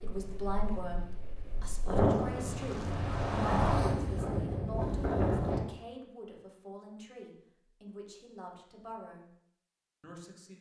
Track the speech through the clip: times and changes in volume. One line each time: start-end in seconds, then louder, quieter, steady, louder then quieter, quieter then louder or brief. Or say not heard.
0.0-9.2 quieter
10.0-10.5 brief.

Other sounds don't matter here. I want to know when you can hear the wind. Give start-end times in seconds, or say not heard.
0.0-5.6.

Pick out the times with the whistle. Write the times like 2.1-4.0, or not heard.
not heard.